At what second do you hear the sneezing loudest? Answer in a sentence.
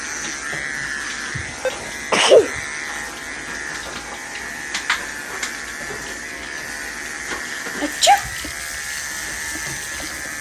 The volume of the sneezing peaks at 2 seconds.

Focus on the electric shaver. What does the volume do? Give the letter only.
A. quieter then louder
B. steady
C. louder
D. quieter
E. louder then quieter
B.